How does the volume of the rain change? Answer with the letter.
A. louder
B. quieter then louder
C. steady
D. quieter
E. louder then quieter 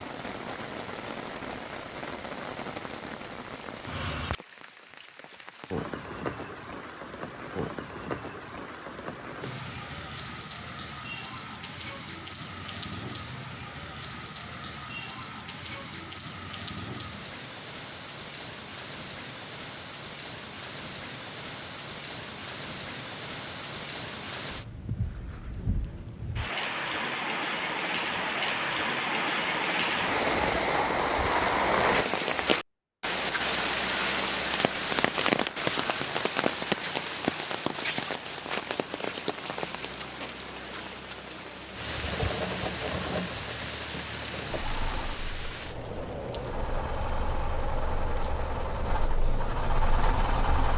E.